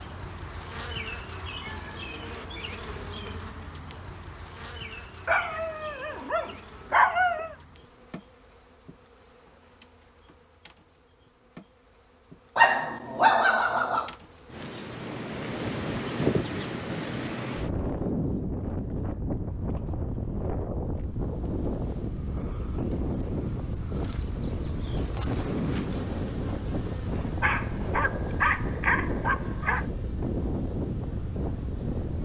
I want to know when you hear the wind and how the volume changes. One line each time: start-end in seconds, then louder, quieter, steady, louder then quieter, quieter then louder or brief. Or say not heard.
14.5-32.2 steady.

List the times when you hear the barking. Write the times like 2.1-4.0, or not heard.
5.2-7.5, 12.6-14.1, 27.4-29.9.